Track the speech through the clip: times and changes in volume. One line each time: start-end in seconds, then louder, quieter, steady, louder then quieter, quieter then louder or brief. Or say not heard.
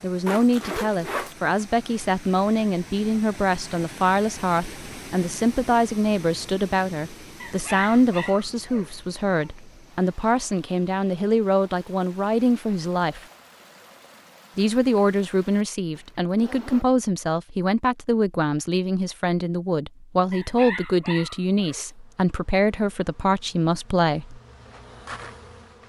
0.0-13.2 steady
14.6-24.4 steady.